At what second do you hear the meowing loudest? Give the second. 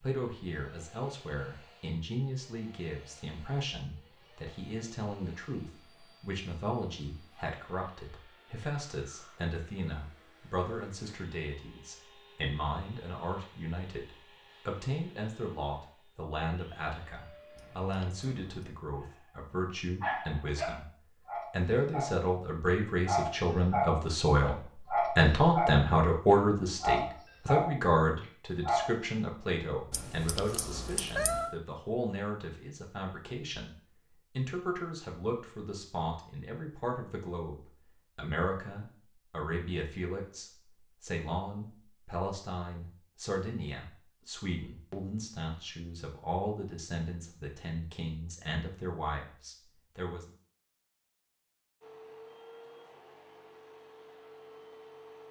31 s.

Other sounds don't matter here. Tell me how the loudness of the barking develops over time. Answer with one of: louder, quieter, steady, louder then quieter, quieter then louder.
louder.